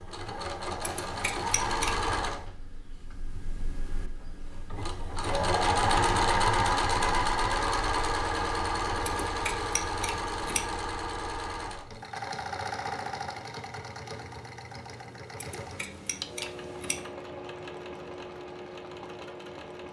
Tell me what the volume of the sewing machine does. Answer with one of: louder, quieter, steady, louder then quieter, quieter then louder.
louder then quieter.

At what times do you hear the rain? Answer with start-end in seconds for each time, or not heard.
not heard.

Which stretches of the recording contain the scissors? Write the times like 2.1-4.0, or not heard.
0.8-2.0, 9.1-10.7, 15.3-17.1.